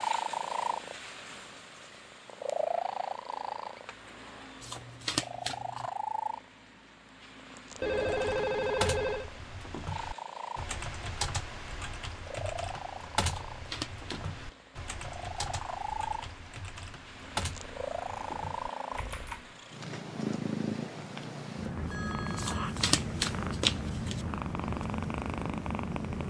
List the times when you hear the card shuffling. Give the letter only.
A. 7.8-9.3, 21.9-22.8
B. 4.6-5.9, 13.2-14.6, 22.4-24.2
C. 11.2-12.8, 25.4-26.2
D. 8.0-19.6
B.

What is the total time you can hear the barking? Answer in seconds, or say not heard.
not heard.